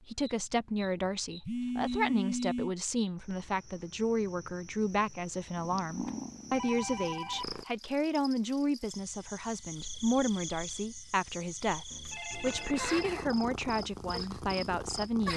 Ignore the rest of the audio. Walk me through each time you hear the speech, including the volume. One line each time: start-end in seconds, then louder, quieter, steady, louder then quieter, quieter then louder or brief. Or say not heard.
0.1-15.3 steady.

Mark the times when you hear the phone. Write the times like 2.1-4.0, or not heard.
1.4-2.8, 6.0-7.5, 11.9-13.2.